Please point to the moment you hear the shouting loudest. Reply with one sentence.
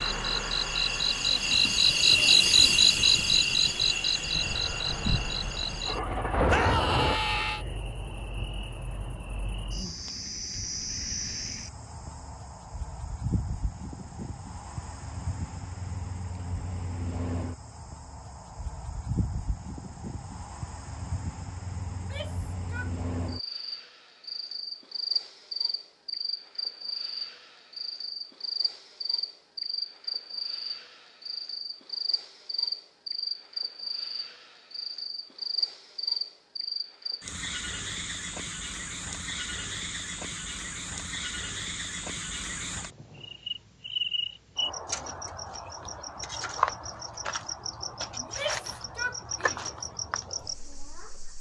The loudest moment of the shouting is at 7 seconds.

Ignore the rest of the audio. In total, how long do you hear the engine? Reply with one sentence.
The engine can be heard for 7 seconds in total.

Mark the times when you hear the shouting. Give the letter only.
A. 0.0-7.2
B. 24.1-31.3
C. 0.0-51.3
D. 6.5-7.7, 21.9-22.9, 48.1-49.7
D.